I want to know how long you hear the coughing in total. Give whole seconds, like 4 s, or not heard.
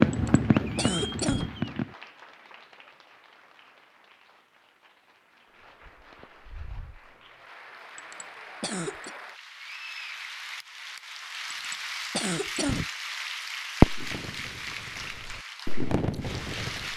4 s.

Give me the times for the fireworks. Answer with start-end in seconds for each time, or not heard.
0.0-1.9, 13.8-16.9.